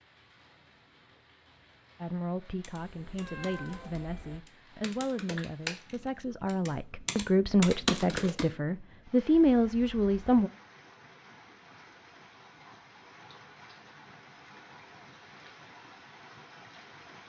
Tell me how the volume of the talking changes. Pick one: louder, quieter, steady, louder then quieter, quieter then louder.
louder.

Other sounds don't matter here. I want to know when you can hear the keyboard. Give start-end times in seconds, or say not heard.
2.6-8.4.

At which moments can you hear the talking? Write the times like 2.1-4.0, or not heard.
2.0-10.5.